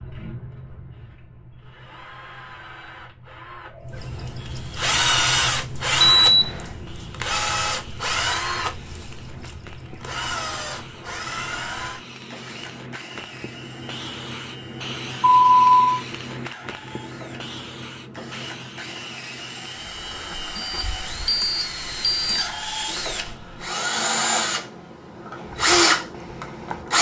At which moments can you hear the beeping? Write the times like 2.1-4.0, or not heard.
6.0-6.7, 15.2-16.0, 20.6-22.5.